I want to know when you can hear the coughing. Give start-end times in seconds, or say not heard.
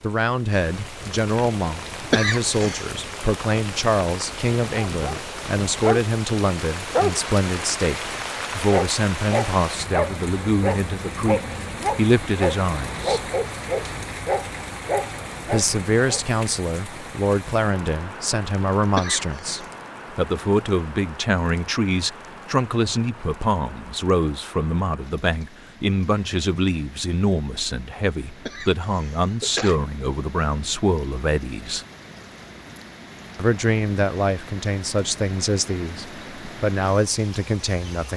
2.1-2.9, 18.9-19.6, 28.4-29.8.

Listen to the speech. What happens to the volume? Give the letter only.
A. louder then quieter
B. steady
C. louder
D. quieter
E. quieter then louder
B.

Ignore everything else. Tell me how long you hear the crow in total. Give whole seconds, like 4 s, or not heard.
not heard.